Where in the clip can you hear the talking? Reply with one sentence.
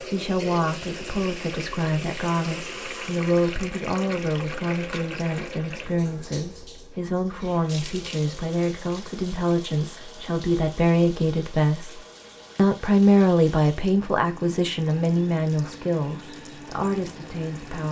You can hear the talking from 0.0 to 17.8 s.